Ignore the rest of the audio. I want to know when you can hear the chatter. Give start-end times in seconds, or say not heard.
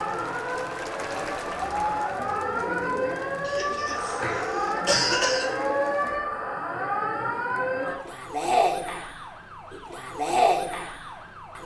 0.0-6.2.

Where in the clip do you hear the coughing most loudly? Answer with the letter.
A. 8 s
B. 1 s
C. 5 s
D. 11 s
C.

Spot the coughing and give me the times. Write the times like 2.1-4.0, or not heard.
3.5-5.5.